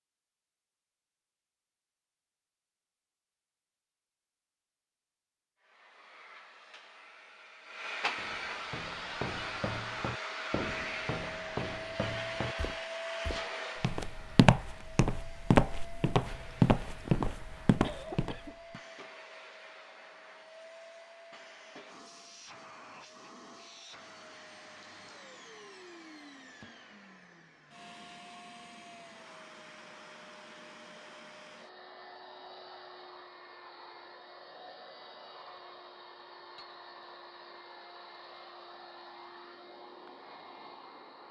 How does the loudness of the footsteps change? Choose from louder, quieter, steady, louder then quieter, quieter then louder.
louder.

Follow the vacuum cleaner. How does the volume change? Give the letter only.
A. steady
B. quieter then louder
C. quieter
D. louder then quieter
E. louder
C.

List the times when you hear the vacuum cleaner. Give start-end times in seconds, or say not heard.
5.6-41.2.